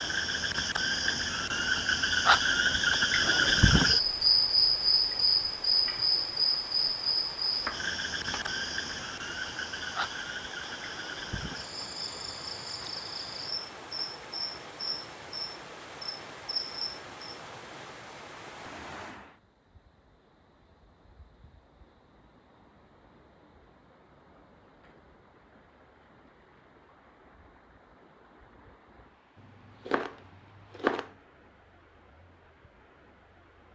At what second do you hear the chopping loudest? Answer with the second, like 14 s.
31 s.